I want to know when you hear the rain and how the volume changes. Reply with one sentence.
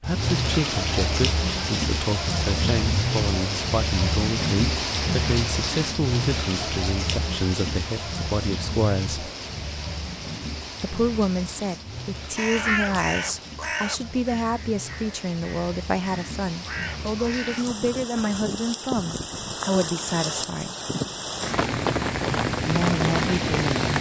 The rain can be heard from 0.0 to 23.9 s, getting quieter then louder.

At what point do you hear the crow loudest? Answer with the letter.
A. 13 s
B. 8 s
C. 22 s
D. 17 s
A.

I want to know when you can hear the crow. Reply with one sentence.
The crow can be heard from 12.3 to 17.8 s.